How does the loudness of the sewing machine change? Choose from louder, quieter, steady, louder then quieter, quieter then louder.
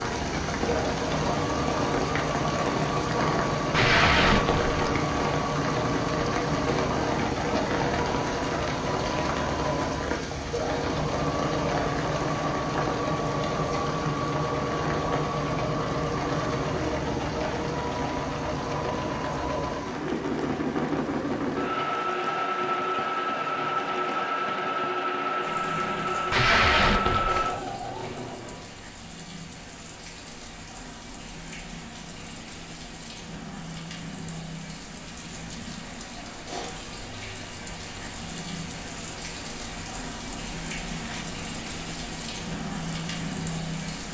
steady.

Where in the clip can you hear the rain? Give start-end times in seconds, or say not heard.
0.0-44.0.